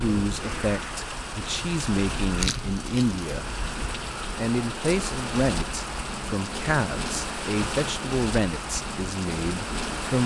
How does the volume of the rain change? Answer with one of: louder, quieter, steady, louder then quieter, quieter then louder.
steady.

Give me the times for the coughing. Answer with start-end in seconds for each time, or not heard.
not heard.